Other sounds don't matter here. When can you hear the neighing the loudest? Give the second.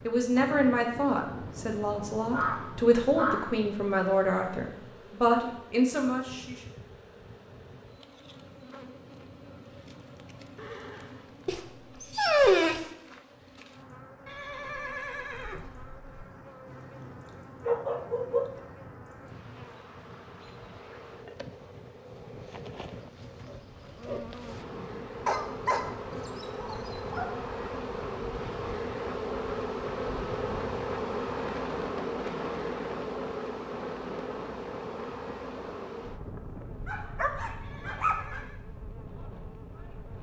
15 s.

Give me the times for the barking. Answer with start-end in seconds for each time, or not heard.
2.3-3.5, 11.4-12.9, 17.6-18.5, 25.2-27.2, 36.9-38.4.